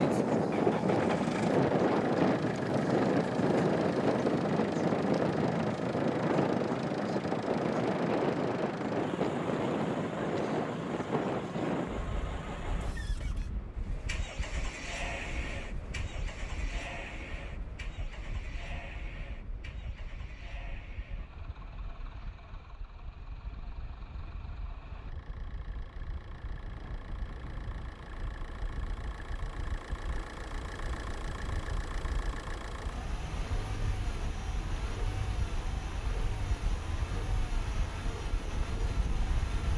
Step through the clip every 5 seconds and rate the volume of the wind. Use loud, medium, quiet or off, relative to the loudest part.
loud, loud, medium, quiet, quiet, quiet, quiet, quiet.